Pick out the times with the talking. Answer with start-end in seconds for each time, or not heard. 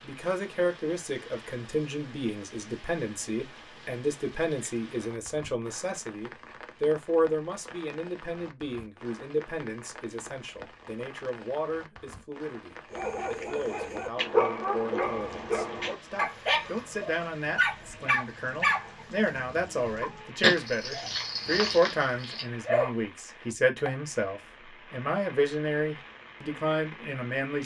0.0-27.6.